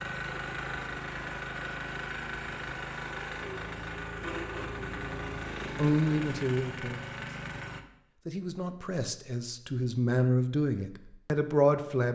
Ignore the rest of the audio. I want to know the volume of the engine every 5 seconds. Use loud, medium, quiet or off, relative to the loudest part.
loud, loud, off.